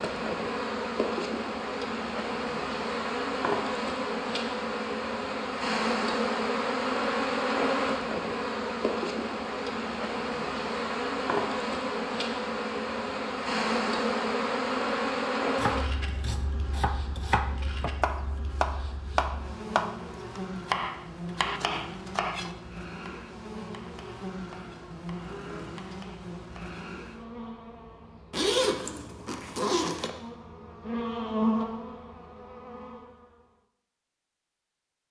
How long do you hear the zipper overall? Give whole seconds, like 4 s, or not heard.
2 s.